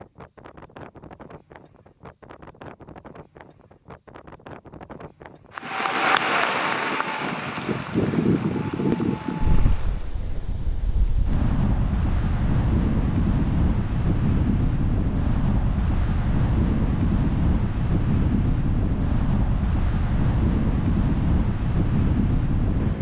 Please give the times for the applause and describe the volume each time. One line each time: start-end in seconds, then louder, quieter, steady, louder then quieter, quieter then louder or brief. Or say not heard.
5.5-10.2 quieter.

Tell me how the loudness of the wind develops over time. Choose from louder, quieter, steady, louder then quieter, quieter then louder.
louder.